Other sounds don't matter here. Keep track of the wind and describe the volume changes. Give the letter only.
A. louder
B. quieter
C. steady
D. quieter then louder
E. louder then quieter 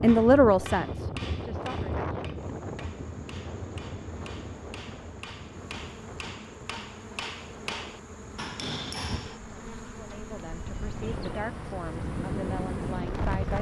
D.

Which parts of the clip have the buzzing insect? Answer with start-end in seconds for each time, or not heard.
2.4-13.5.